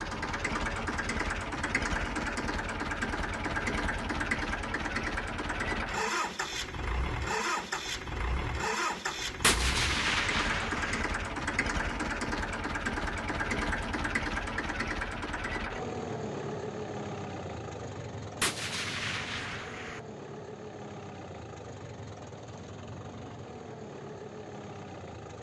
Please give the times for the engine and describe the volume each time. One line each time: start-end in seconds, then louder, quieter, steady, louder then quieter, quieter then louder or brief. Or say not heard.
0.0-25.3 quieter.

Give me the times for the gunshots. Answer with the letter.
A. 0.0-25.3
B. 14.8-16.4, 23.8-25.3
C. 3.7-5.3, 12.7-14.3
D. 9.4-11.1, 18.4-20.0
D.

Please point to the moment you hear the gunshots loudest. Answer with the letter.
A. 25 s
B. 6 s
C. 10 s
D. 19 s
C.